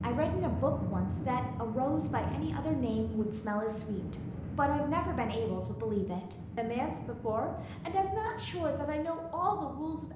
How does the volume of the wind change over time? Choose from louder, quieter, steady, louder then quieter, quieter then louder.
quieter.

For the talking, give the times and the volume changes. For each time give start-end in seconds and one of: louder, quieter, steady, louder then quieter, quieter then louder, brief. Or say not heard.
0.0-10.1 steady.